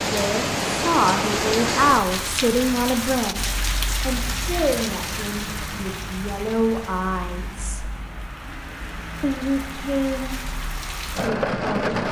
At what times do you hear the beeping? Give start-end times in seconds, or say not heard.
not heard.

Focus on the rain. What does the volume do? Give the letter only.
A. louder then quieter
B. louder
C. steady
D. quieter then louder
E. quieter
D.